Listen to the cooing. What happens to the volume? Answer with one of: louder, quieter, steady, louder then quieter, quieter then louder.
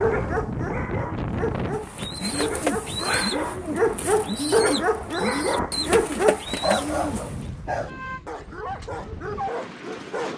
steady.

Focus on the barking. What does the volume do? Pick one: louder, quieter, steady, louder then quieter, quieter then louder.
louder then quieter.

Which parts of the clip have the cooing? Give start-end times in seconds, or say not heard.
1.6-7.5.